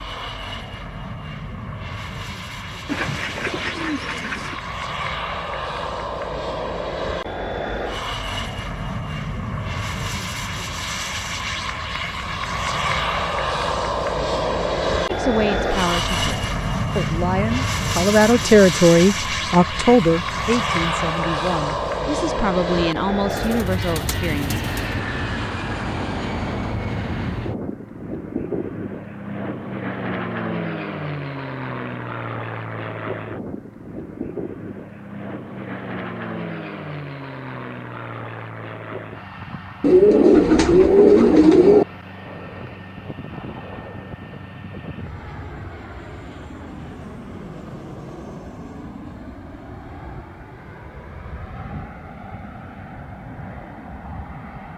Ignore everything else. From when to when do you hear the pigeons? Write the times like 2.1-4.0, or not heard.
2.9-4.6, 23.3-24.9, 39.8-41.9.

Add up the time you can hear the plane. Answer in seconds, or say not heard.
55 s.